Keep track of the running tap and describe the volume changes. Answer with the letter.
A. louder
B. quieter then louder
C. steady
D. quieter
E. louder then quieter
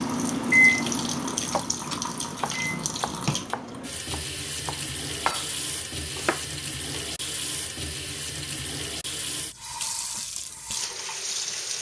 C.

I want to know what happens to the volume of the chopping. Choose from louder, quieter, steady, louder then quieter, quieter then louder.
quieter then louder.